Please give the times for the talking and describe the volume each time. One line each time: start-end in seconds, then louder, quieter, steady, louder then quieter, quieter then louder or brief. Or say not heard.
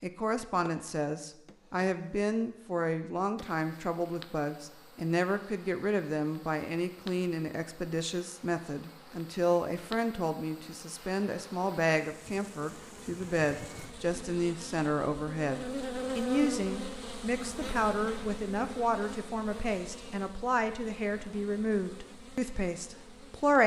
0.0-23.6 steady.